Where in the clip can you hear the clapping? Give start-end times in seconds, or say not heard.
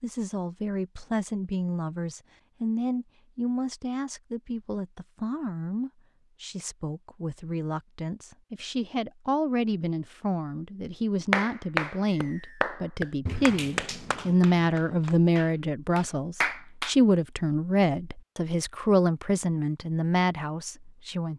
11.3-16.9.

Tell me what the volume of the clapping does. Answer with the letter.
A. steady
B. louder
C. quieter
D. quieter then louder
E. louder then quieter
D.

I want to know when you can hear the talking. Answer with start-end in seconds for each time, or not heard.
0.0-21.3.